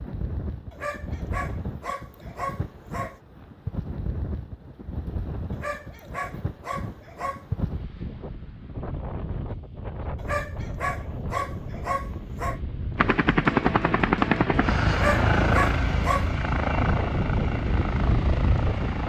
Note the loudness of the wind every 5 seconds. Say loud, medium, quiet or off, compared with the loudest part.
medium, medium, medium, loud.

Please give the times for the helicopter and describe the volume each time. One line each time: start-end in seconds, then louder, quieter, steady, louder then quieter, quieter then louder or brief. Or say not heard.
12.9-19.0 quieter.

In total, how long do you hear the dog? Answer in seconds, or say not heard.
8 s.